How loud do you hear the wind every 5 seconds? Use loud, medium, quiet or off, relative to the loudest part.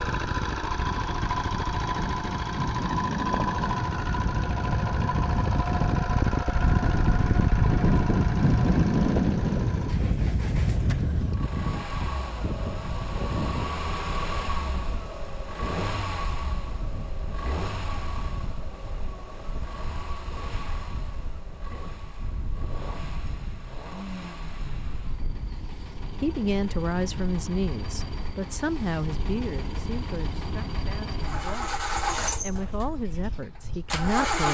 medium, loud, medium, quiet, quiet, quiet, quiet.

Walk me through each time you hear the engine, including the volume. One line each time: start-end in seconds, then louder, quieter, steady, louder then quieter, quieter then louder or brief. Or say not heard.
0.0-34.4 quieter then louder.